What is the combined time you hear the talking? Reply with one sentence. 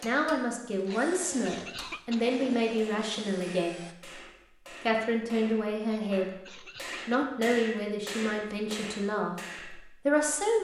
You can hear the talking for 10 seconds altogether.